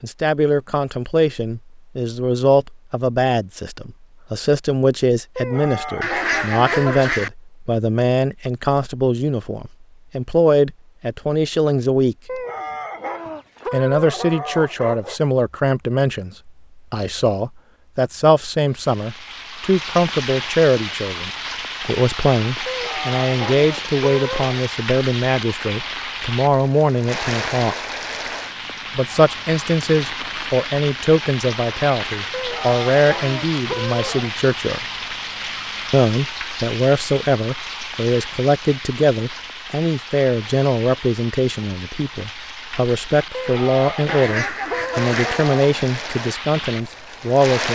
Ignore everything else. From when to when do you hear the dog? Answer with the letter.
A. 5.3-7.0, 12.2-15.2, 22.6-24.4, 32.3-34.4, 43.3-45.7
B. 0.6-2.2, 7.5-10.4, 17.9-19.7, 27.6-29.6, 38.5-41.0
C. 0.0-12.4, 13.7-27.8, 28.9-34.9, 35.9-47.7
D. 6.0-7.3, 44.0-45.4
A.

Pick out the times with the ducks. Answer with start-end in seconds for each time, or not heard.
6.0-7.3, 44.0-45.4.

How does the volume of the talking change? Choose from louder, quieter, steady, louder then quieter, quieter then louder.
steady.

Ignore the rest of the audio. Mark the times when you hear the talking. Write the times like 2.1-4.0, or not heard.
0.0-12.4, 13.7-27.8, 28.9-34.9, 35.9-47.7.